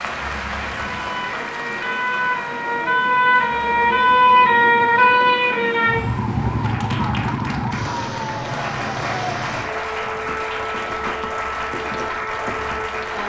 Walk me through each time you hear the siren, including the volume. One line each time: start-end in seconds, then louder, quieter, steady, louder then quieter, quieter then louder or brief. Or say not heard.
0.0-13.2 louder then quieter.